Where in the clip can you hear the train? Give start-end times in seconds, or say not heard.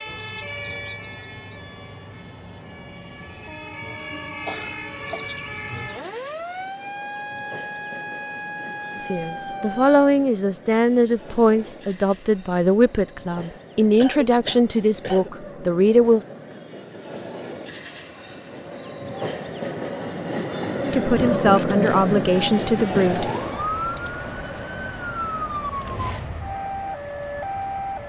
0.0-28.0.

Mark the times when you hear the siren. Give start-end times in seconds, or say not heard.
0.0-10.2, 22.3-28.0.